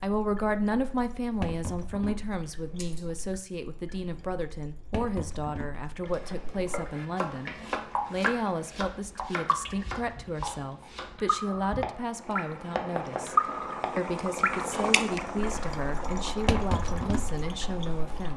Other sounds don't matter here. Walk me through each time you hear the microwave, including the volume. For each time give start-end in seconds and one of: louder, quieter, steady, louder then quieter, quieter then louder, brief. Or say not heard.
not heard.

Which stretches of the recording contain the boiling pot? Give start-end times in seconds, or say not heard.
6.0-18.3.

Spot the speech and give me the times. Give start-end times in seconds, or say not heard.
0.0-13.3, 13.9-18.3.